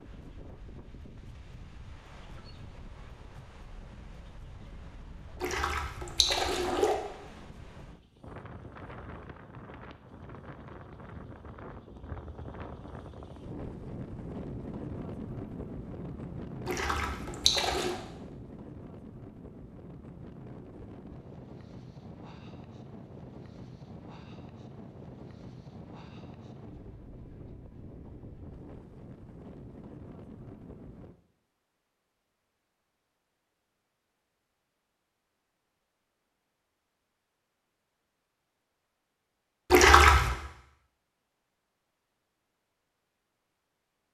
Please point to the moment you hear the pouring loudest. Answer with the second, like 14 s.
40 s.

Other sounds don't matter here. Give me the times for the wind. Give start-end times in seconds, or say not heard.
0.0-31.1.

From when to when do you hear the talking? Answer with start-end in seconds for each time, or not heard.
not heard.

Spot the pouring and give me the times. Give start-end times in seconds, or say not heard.
5.4-7.0, 16.6-17.9, 39.7-40.4.